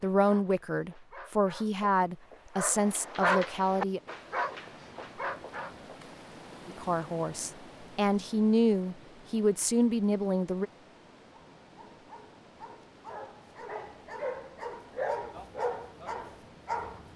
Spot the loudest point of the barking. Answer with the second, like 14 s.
3 s.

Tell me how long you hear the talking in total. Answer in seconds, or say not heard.
8 s.